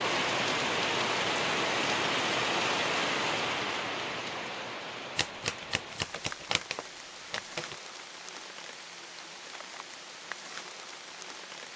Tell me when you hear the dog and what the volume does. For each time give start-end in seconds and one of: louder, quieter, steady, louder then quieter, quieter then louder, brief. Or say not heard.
not heard.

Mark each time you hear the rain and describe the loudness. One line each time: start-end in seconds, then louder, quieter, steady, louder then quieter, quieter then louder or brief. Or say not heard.
0.0-11.7 quieter.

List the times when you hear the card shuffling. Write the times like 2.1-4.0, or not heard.
5.2-7.8.